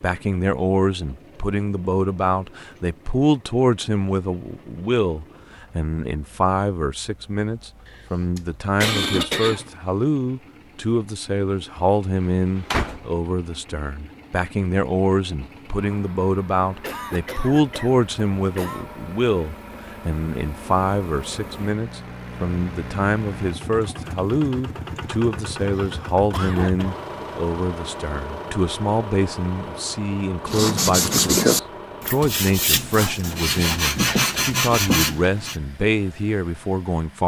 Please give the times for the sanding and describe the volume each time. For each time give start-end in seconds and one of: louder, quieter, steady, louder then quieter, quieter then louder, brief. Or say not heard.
30.4-35.5 quieter then louder.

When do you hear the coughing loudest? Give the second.
9 s.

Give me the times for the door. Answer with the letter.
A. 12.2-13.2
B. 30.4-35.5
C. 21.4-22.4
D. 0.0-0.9
A.